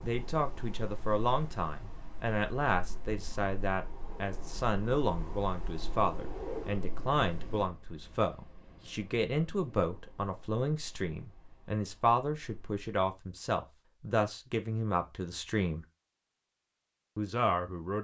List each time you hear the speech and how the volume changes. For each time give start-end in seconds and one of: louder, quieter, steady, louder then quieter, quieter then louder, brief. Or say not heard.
0.0-15.8 steady
17.1-18.0 brief.